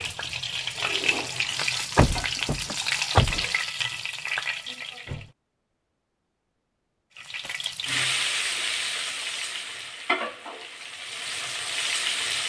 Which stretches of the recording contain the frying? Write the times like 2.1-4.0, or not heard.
0.0-5.3, 7.2-12.4.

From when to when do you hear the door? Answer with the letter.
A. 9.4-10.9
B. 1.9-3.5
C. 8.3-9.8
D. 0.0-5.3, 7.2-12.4
B.